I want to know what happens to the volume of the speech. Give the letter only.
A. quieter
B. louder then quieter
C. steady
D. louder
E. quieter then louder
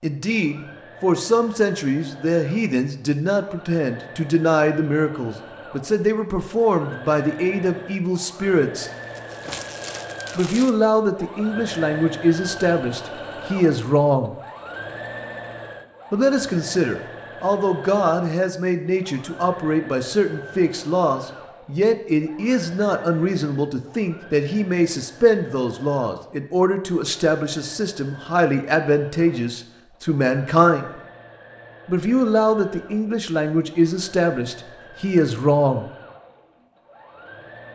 C.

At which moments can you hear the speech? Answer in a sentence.
The speech can be heard from 0.0 to 8.9 s, from 10.3 to 14.3 s, from 16.1 to 30.9 s and from 31.9 to 35.9 s.